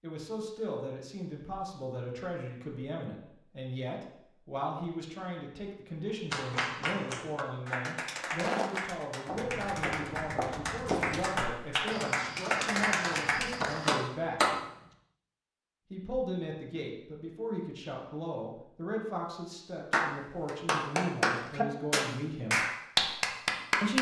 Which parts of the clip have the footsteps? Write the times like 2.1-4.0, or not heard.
8.3-14.1.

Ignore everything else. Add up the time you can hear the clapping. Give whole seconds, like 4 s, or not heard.
12 s.